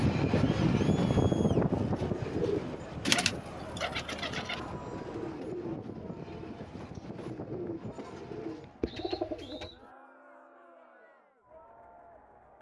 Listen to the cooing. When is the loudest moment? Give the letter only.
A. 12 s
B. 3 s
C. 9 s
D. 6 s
B.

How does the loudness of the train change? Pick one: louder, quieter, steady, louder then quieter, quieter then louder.
quieter.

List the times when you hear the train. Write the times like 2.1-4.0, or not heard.
0.0-8.8.